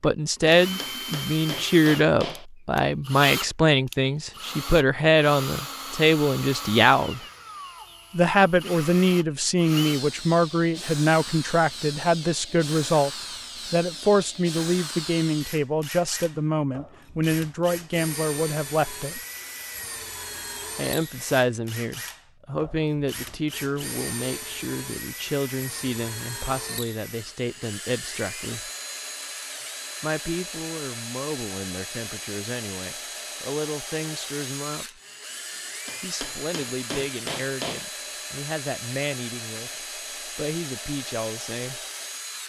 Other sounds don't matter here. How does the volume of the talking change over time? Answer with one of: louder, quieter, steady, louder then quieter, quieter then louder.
quieter.